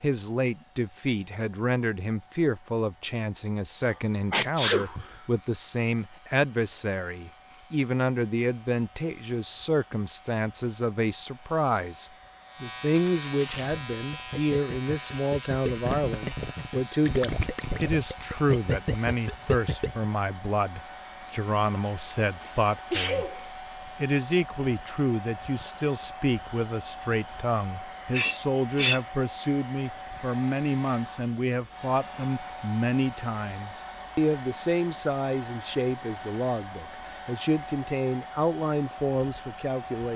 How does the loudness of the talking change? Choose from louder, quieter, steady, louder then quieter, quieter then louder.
steady.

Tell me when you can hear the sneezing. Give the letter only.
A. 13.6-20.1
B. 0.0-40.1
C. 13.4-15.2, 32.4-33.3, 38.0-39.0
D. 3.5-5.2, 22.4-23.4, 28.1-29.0
D.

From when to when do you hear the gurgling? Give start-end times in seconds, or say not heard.
13.6-20.1.